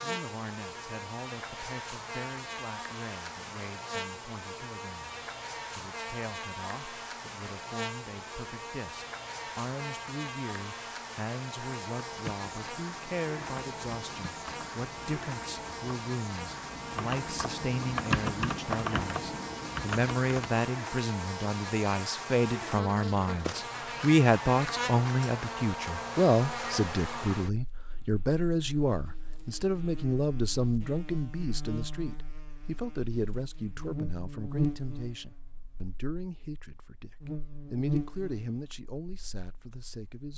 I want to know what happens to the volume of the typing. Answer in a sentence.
The loudness of the typing goes up.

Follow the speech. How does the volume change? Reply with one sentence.
The loudness of the speech goes up, then down.